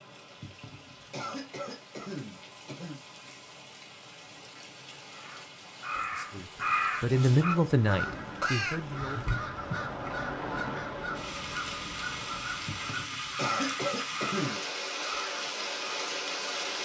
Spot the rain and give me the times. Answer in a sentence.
The rain can be heard from 0.0 to 16.8 s.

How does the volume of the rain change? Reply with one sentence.
The loudness of the rain goes up.